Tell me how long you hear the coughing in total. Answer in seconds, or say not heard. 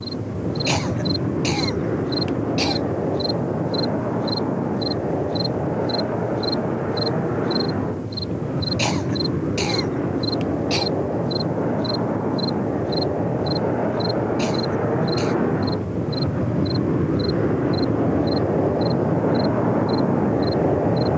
5 s.